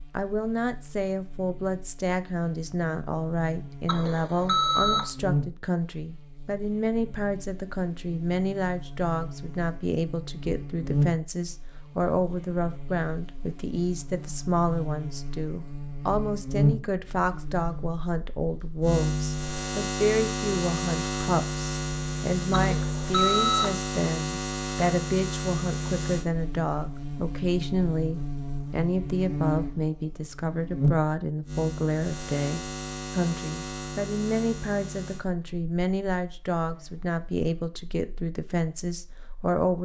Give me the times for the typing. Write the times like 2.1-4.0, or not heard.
not heard.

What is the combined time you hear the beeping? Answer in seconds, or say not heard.
2 s.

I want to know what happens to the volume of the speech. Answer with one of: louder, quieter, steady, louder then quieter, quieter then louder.
steady.